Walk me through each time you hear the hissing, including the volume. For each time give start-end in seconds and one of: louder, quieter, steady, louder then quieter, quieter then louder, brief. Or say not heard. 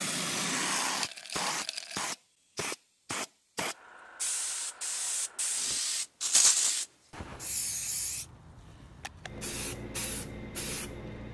0.0-11.2 quieter.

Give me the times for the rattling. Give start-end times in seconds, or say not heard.
1.0-2.0, 6.2-6.8.